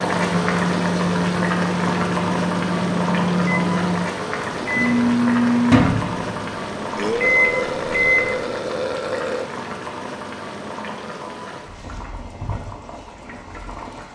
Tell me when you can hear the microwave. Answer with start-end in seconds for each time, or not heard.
0.0-8.3.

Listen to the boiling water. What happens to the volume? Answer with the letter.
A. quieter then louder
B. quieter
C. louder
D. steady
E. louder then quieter
B.